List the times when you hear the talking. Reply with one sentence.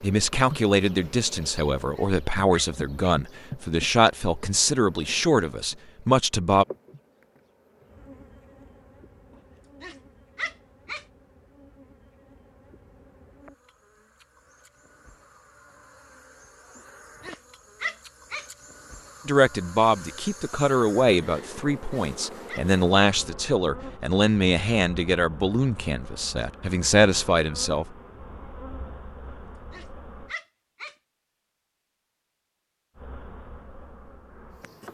You can hear the talking from 0.0 to 6.7 s and from 19.2 to 27.9 s.